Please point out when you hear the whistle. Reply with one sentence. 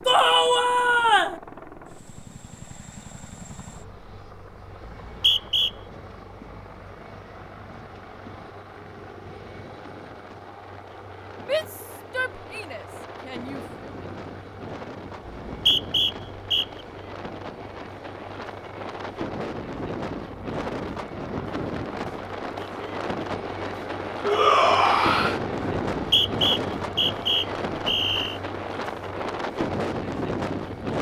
The whistle can be heard from 4.8 to 5.7 s, from 15.2 to 16.6 s and from 25.9 to 28.4 s.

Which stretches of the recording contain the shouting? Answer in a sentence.
The shouting can be heard from 0.1 to 1.4 s, from 11.4 to 13.7 s and from 24.2 to 25.4 s.